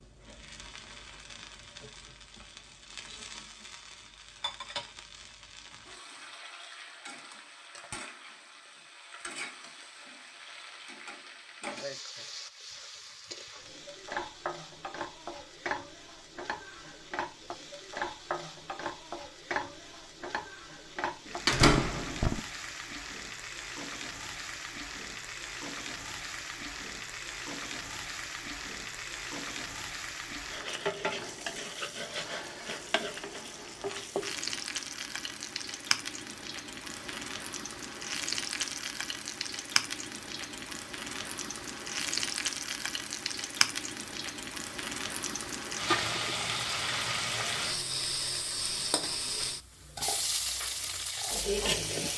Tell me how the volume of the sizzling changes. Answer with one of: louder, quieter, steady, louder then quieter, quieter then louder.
louder.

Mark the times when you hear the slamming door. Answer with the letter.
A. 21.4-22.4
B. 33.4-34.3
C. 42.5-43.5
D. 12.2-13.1
A.